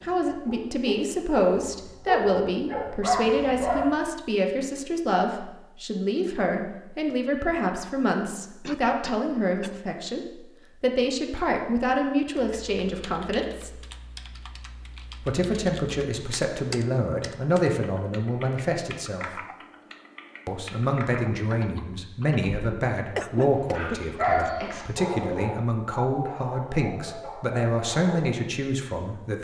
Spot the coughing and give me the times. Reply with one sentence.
You can hear the coughing from 8.6 to 9.8 s and from 23.1 to 24.7 s.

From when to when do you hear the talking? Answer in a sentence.
You can hear the talking from 0.0 to 13.8 s, from 15.2 to 19.4 s and from 20.4 to 29.3 s.